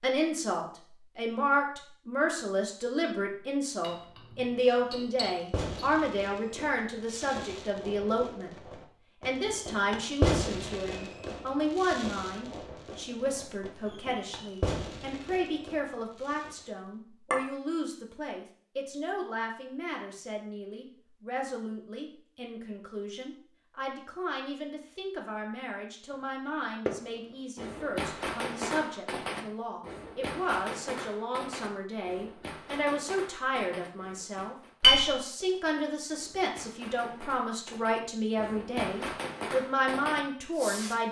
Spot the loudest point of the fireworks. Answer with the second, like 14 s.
10 s.